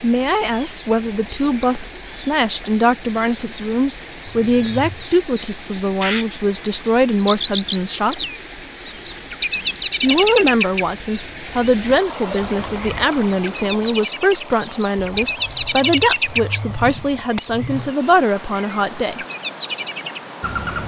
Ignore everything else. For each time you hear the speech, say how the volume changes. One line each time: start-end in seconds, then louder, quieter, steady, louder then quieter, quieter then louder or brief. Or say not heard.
0.0-8.2 steady
10.0-19.2 steady.